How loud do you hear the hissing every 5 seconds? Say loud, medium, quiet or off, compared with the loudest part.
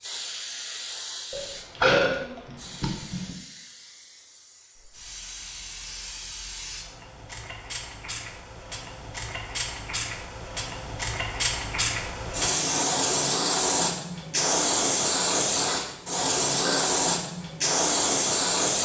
quiet, quiet, loud, loud.